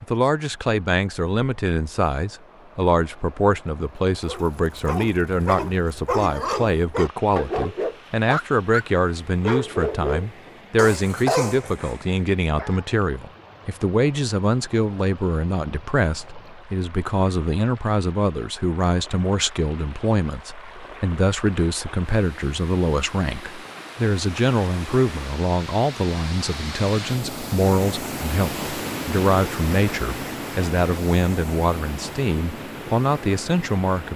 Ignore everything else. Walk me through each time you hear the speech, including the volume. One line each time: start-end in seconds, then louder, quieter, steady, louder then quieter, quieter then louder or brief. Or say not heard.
0.0-34.1 steady.